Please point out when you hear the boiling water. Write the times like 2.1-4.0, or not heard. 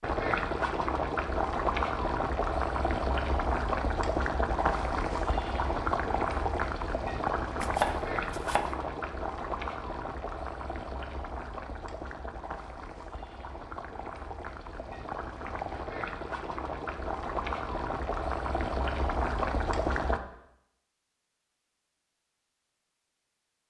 0.0-20.2.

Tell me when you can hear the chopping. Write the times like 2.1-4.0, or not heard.
7.6-8.8.